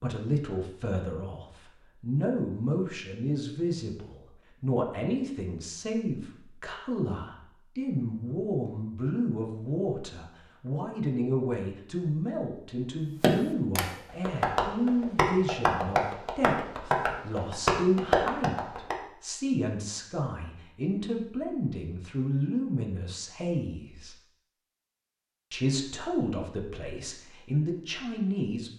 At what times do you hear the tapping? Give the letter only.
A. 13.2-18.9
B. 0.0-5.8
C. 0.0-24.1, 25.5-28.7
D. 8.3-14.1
A.